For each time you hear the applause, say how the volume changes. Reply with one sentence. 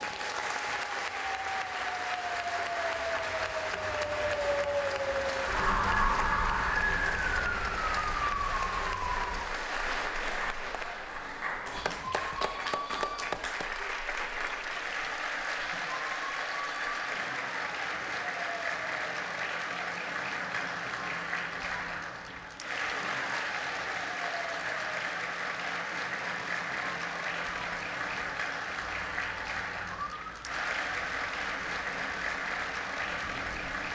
The applause can be heard from 0.0 to 33.9 s, at a steady volume.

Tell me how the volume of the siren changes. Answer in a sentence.
The volume of the siren goes down.